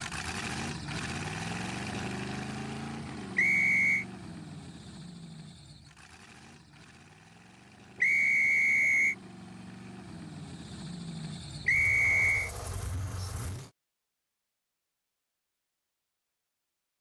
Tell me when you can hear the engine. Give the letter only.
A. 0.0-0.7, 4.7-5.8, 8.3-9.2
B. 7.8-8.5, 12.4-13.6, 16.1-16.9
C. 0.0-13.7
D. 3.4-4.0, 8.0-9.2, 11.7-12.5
C.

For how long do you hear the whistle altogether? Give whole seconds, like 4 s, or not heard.
3 s.